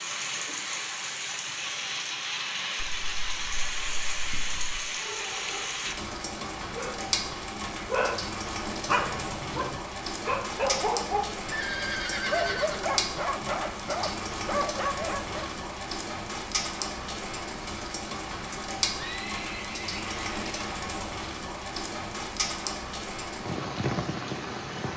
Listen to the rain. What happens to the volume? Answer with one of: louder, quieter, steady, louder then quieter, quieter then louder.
steady.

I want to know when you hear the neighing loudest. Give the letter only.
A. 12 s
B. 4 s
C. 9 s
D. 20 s
A.